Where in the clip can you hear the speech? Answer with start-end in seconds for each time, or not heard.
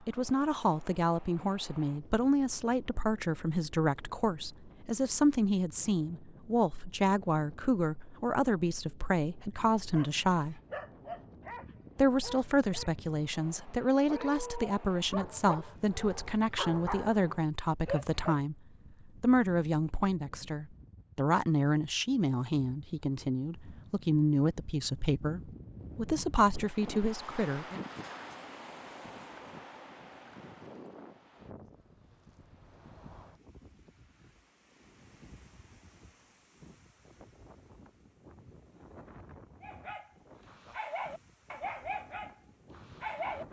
0.1-10.6, 11.9-18.6, 19.2-27.8.